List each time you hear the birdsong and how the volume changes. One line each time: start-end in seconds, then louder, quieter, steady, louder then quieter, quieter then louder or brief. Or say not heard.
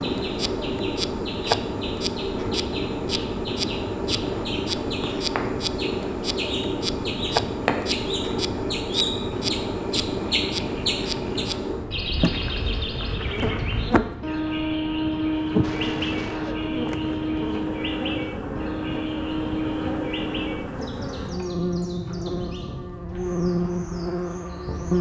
0.0-24.9 louder then quieter.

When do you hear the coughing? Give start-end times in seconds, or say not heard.
15.6-16.6.